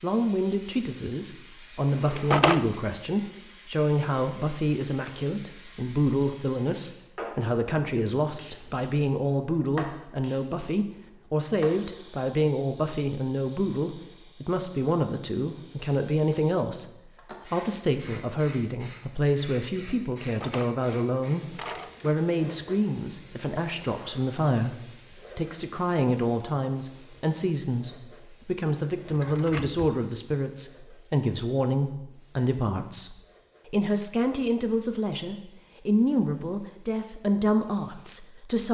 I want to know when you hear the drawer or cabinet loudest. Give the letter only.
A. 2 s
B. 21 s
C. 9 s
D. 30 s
A.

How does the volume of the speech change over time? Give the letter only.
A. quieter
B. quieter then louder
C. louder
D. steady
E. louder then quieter
D.